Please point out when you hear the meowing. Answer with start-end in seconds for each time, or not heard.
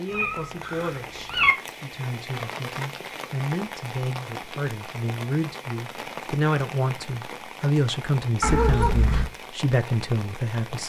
0.1-1.6, 8.4-9.3.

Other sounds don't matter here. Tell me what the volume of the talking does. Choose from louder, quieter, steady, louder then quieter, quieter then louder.
louder.